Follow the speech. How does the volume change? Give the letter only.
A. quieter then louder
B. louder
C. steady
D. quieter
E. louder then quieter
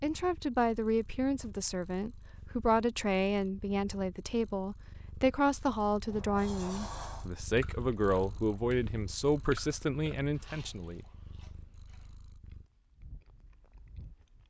C.